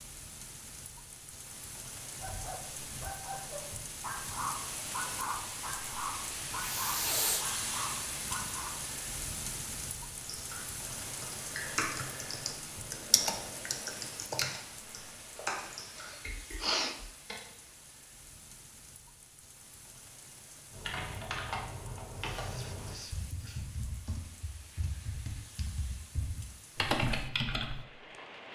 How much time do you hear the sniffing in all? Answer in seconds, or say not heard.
3 s.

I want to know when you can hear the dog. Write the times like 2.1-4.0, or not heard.
2.2-8.8.